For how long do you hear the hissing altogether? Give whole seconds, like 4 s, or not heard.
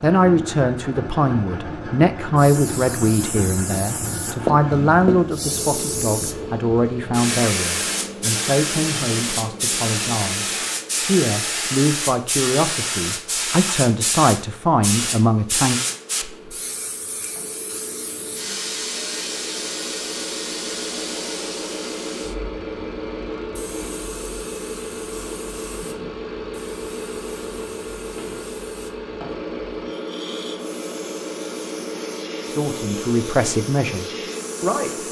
33 s.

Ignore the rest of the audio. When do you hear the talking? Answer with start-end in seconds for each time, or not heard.
0.0-15.8, 32.5-35.0.